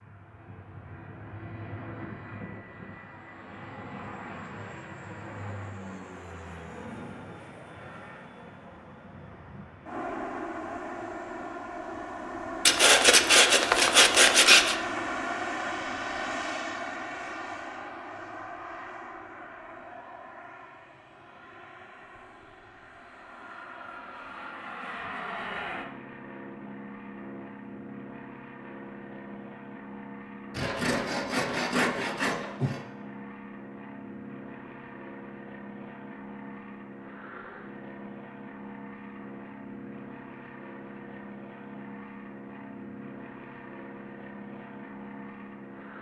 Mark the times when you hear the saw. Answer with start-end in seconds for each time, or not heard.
12.7-14.8, 30.6-32.8.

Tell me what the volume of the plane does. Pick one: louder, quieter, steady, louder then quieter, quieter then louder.
louder then quieter.